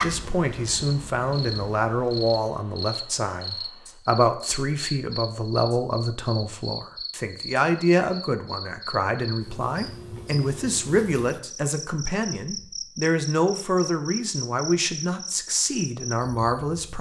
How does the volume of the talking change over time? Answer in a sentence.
The volume of the talking stays about the same.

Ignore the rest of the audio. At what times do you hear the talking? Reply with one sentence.
You can hear the talking from 0.0 to 16.9 s.